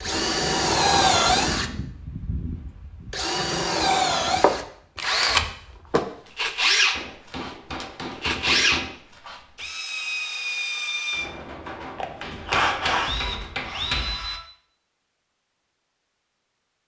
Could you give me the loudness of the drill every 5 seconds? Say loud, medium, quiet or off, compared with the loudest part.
loud, loud, medium, off.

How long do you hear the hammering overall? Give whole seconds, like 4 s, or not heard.
6 s.